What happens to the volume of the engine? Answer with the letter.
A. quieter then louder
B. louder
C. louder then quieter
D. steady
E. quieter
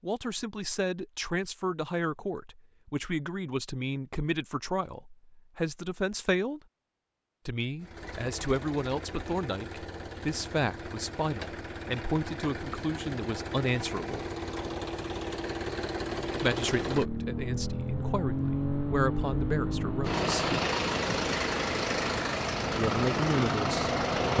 B.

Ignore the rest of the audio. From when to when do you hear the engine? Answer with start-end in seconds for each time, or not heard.
7.8-24.3.